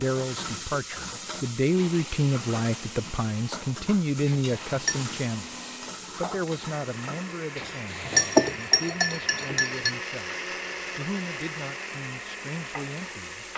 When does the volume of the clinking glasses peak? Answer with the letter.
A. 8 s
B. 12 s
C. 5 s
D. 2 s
A.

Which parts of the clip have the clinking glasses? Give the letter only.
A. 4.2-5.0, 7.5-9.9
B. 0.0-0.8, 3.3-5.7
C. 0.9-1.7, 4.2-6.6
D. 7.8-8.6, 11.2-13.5
A.